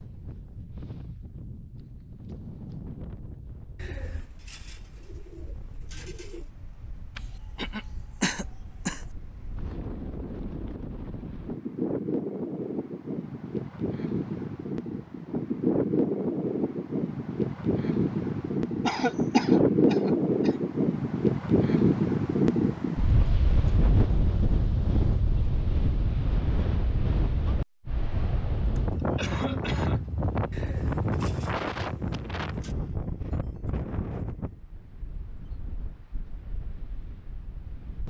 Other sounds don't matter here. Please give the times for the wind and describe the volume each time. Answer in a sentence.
The wind can be heard from 0.0 to 38.0 s, getting louder then quieter.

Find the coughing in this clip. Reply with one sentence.
The coughing can be heard from 7.2 to 9.0 s, from 18.8 to 20.5 s and from 28.8 to 30.1 s.